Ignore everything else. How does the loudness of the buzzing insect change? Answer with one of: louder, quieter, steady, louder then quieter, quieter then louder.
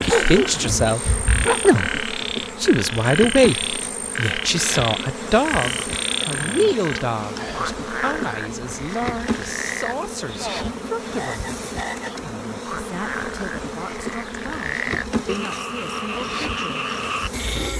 steady.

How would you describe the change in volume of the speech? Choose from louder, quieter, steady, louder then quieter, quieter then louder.
quieter.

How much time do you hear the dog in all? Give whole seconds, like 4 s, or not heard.
2 s.